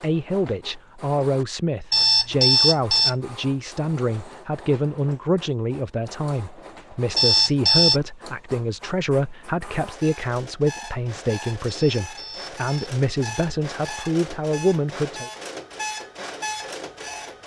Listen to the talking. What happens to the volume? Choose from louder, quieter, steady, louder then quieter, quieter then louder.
steady.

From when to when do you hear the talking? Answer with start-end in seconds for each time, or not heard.
0.0-15.3.